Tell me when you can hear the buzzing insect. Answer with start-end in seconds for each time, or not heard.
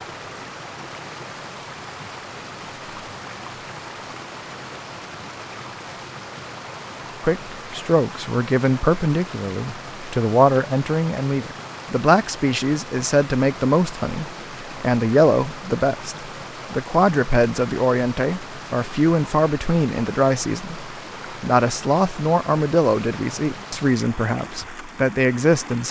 not heard.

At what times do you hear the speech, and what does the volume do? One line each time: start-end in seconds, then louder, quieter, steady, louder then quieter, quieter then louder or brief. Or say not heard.
7.2-25.8 steady.